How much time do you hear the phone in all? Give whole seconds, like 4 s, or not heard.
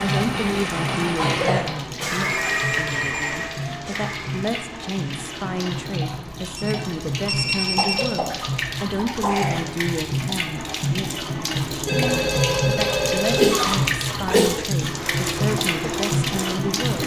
5 s.